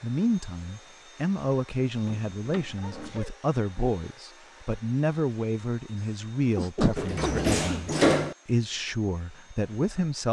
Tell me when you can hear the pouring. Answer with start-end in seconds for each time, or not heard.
not heard.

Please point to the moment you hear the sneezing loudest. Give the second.
7 s.